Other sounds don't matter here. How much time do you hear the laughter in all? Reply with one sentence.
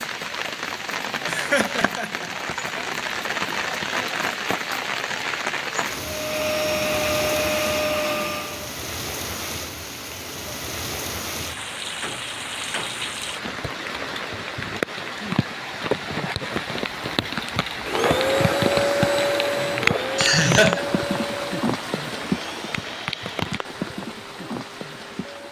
The laughter can be heard for 2 seconds in total.